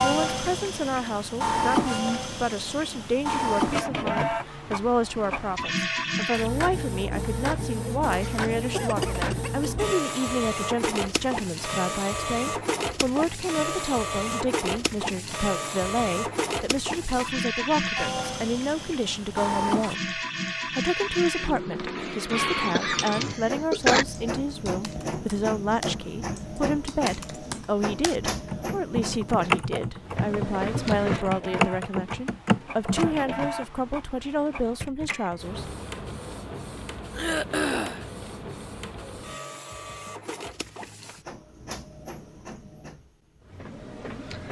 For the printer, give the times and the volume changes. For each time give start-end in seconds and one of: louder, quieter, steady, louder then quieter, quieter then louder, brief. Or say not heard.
0.0-44.4 quieter.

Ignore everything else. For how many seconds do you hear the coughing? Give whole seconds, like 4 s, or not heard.
4 s.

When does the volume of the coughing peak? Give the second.
24 s.